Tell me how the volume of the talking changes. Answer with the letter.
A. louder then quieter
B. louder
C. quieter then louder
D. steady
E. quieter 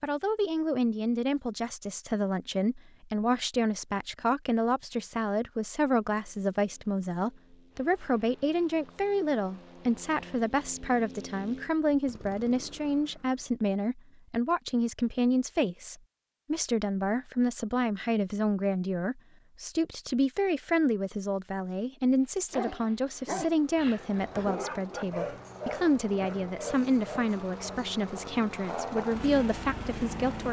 D.